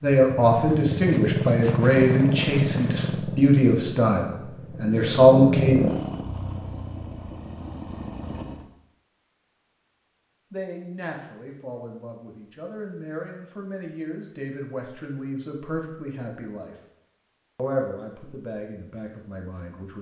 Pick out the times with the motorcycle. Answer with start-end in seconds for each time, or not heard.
0.1-8.7.